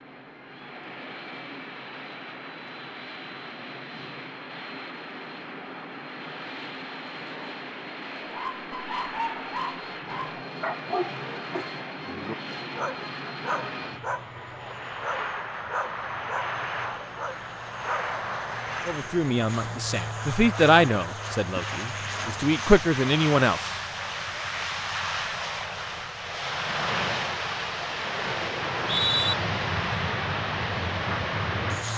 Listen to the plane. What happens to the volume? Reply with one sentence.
The loudness of the plane goes up.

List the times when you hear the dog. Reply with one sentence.
The dog can be heard from 8.3 to 18.2 s.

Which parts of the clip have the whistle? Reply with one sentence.
You can hear the whistle from 28.6 to 29.4 s.